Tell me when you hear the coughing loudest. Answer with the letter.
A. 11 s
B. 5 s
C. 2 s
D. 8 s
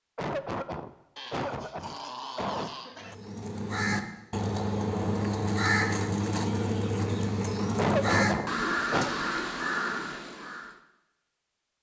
D.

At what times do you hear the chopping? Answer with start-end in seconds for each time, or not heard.
not heard.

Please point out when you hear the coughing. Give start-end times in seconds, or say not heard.
0.1-2.7, 7.8-9.1.